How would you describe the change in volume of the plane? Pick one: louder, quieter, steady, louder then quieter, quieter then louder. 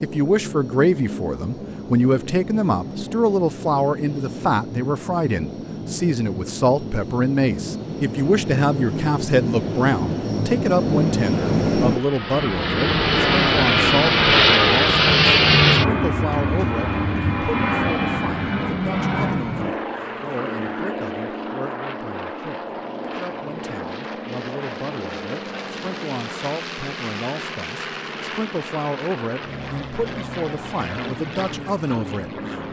louder then quieter.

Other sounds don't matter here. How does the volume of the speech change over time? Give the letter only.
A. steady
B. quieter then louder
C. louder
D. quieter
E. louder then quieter
B.